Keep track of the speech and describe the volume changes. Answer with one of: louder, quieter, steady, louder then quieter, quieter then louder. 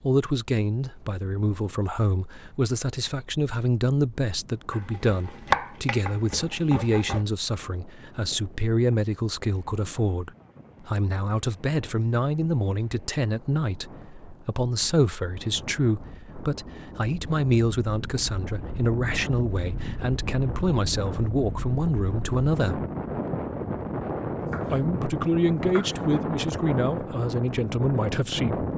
steady.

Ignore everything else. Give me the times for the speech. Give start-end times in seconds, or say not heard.
0.0-22.8, 24.7-28.6.